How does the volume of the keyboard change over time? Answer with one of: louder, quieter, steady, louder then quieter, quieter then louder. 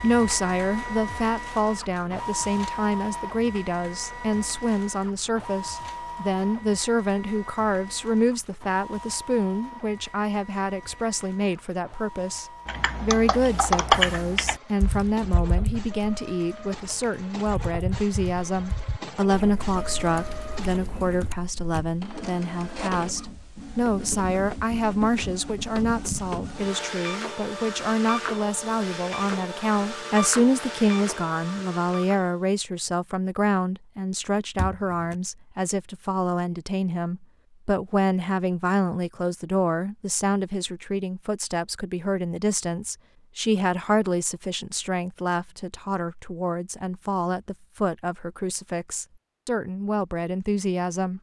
quieter.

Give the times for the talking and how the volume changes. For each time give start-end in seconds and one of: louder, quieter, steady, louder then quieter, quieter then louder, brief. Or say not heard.
0.0-51.1 steady.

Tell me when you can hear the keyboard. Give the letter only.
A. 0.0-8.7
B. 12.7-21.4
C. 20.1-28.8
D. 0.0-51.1
B.